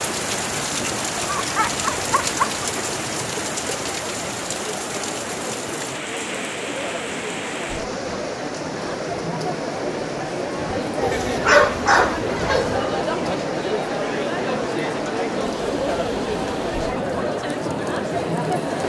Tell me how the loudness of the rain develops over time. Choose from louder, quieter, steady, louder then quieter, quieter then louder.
quieter.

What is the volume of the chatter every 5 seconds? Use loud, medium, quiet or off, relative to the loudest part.
medium, medium, loud, loud.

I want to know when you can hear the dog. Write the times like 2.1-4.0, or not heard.
1.1-2.6, 11.0-12.8.